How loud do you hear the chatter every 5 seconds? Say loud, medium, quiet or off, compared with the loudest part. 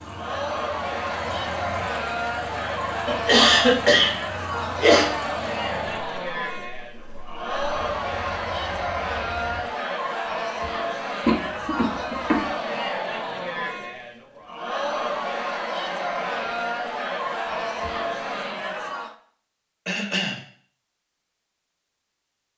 loud, loud, loud, loud, off.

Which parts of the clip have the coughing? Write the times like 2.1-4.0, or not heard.
3.0-5.0, 11.2-12.4, 19.9-20.4.